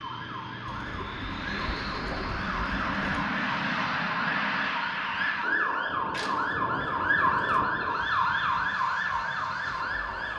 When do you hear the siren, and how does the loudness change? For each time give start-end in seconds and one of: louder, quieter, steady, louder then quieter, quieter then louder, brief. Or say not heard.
0.0-10.3 louder.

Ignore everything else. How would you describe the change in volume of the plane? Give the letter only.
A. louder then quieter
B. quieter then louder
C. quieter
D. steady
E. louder
A.